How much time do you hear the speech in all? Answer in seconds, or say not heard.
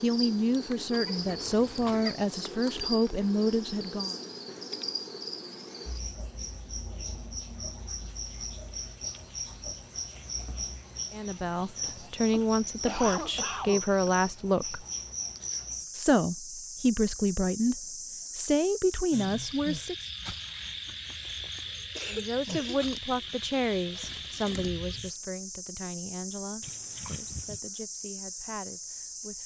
19 s.